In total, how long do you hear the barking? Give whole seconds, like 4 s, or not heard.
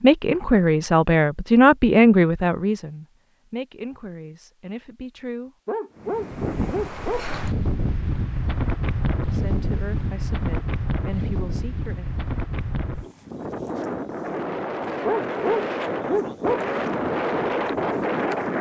3 s.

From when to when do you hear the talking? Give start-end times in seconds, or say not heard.
0.0-5.5, 9.2-12.2.